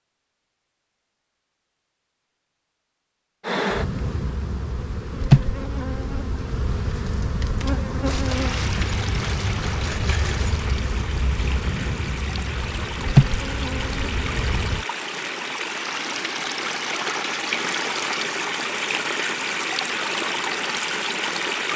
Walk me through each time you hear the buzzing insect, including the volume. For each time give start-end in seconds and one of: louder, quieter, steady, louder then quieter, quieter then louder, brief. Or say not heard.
3.4-14.8 quieter then louder.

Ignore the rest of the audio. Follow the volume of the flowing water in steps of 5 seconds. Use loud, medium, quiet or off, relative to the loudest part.
off, medium, medium, loud, loud.